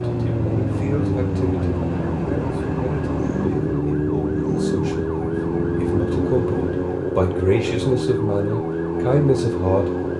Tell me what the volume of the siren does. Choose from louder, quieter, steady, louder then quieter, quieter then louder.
steady.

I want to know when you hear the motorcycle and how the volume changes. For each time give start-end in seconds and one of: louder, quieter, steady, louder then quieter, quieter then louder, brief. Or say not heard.
0.0-6.8 steady.